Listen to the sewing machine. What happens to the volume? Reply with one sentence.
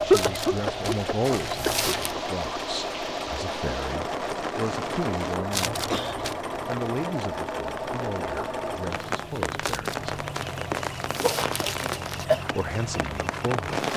The loudness of the sewing machine goes down.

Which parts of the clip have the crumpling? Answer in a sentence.
The crumpling can be heard from 0.1 to 2.1 s, from 5.5 to 6.3 s and from 9.6 to 12.2 s.